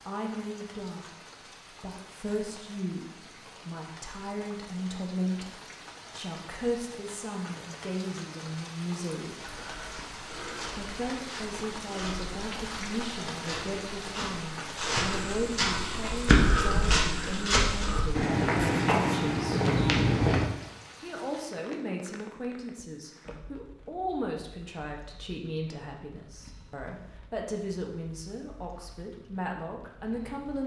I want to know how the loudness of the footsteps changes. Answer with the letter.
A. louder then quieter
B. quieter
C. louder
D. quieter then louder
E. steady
C.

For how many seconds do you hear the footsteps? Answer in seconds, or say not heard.
11 s.